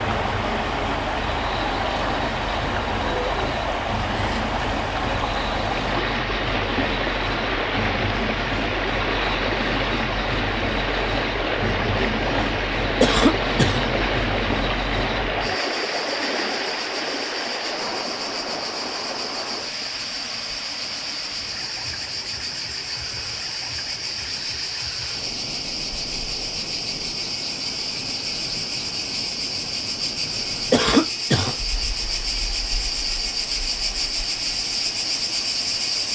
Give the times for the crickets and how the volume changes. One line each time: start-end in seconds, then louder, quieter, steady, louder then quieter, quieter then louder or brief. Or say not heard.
0.0-36.0 louder.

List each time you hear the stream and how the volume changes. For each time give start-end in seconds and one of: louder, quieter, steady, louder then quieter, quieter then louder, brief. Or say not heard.
0.0-36.0 quieter.